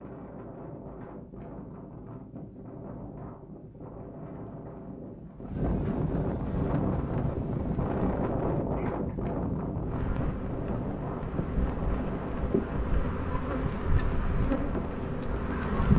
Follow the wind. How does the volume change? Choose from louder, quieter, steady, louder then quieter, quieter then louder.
louder then quieter.